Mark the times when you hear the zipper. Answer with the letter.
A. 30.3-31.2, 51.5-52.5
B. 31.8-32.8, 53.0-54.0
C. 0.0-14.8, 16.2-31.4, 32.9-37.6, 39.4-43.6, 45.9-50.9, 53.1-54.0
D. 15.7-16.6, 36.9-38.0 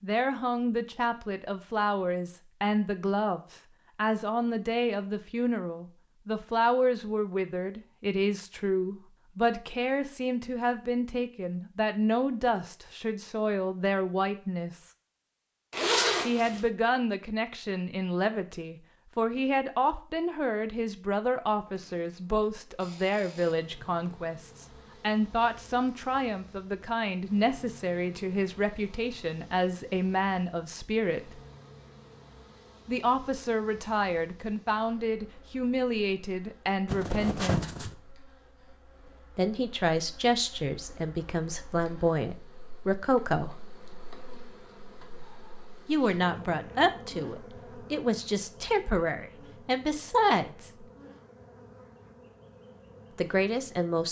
D.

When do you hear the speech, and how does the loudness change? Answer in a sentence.
You can hear the speech from 0.0 to 14.8 s, at a steady volume; from 16.2 to 31.4 s, at a steady volume; from 32.9 to 37.6 s, at a steady volume; from 39.4 to 43.6 s, getting quieter then louder; from 45.9 to 50.9 s, getting quieter then louder; and briefly from 53.1 to 54.0 s.